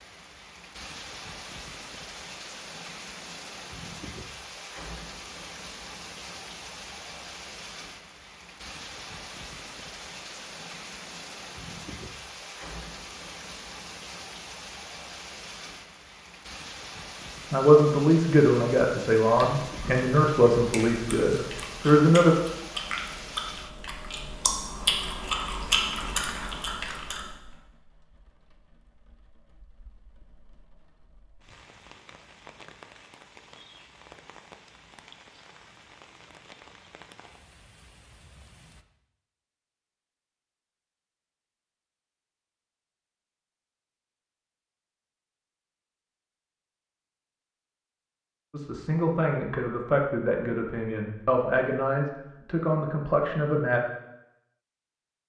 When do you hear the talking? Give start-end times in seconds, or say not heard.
17.5-22.4, 48.5-53.8.